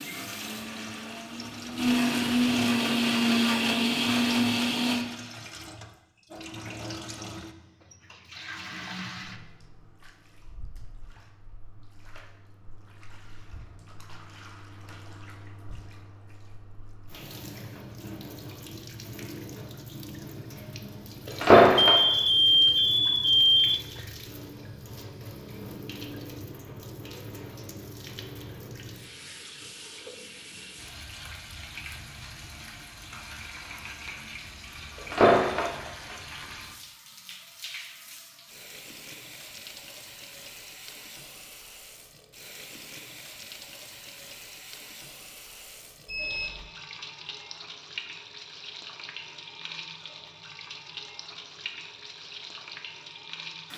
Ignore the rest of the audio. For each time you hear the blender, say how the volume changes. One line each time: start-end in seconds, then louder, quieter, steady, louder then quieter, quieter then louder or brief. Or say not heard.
0.0-5.0 louder.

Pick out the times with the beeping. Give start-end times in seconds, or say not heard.
21.8-23.8, 46.0-46.7.